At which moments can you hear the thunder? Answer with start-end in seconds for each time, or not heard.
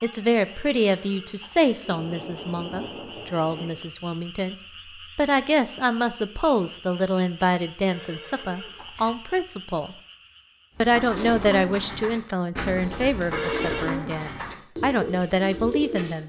1.8-3.7.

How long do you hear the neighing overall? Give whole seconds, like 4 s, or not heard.
3 s.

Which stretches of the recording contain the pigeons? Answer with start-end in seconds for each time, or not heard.
10.8-16.2.